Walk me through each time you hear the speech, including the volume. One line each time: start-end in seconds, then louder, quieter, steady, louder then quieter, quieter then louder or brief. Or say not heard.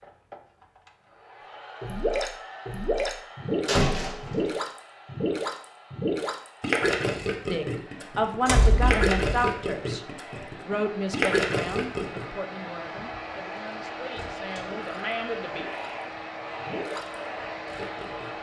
7.5-10.0 brief
10.7-15.7 quieter then louder.